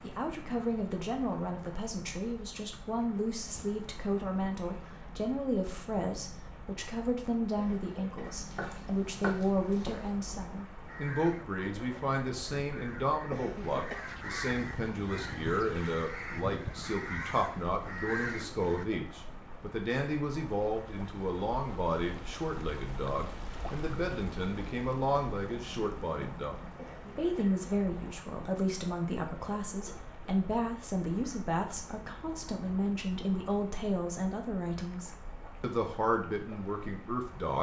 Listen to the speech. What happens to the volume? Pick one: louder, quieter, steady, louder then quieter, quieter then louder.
steady.